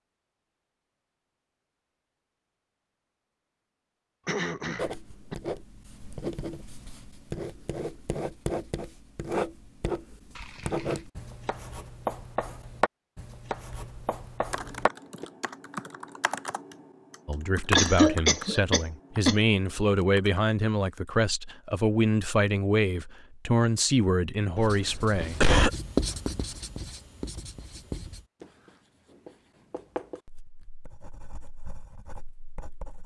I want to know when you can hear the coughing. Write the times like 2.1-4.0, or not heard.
4.2-5.3, 17.8-19.4, 24.6-25.8.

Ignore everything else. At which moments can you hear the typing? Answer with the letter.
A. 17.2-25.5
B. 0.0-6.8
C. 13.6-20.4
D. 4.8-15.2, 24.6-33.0
C.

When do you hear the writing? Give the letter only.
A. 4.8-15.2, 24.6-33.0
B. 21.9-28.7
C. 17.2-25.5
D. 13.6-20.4
A.